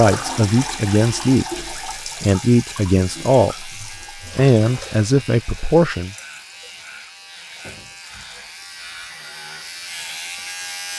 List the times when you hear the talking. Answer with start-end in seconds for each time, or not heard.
0.0-6.2.